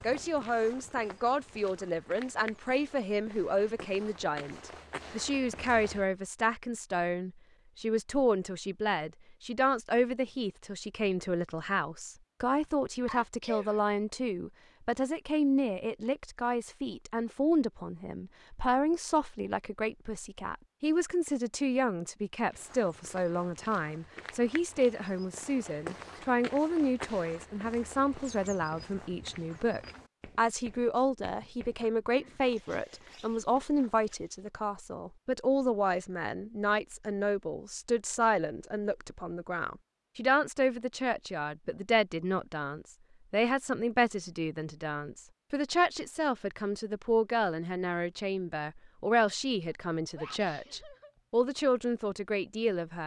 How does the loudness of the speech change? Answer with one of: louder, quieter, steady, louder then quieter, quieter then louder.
steady.